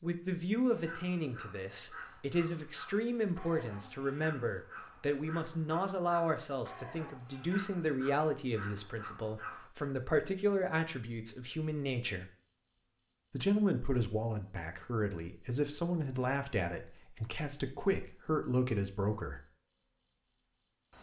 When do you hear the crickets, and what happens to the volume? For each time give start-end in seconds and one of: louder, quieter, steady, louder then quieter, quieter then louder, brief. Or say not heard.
0.0-20.9 quieter.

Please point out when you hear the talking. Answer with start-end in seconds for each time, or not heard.
0.0-12.2, 13.3-19.4.